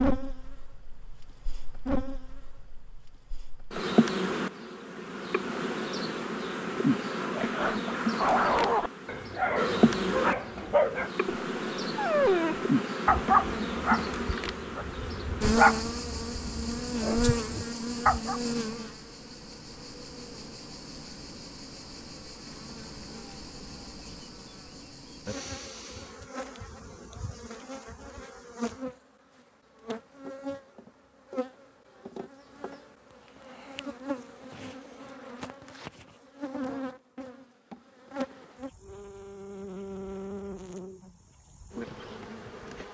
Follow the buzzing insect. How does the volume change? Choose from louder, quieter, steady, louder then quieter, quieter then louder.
quieter.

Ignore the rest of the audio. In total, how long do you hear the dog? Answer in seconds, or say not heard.
11 s.